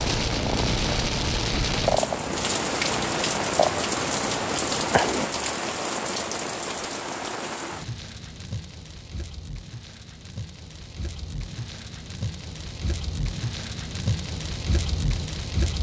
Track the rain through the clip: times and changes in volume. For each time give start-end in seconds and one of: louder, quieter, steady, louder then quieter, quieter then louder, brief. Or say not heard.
0.0-15.7 quieter then louder.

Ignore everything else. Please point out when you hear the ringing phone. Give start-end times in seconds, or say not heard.
not heard.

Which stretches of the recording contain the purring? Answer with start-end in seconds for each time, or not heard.
0.0-5.3.